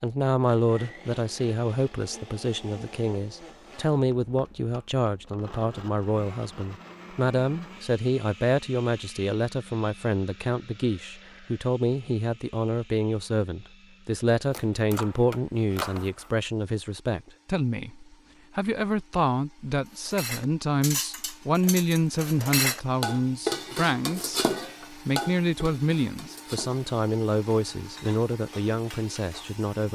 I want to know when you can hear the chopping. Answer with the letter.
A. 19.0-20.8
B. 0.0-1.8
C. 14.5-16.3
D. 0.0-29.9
C.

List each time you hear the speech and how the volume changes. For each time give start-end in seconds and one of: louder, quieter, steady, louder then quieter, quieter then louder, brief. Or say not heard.
0.0-29.9 steady.